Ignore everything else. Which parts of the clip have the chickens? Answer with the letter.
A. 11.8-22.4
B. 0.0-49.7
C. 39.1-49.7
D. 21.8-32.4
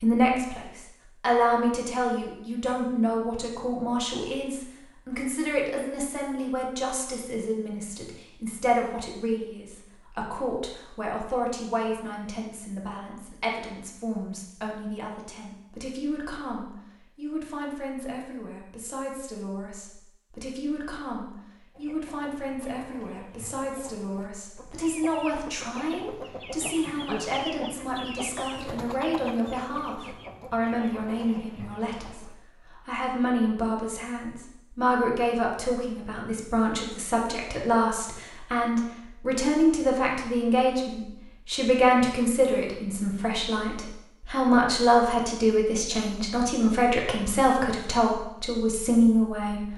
D.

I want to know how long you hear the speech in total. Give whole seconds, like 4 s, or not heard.
50 s.